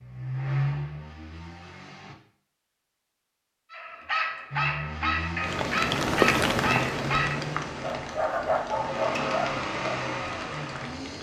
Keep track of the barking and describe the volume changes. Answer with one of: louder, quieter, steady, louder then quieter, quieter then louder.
steady.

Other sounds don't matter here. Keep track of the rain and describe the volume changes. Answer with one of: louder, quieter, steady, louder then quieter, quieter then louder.
quieter.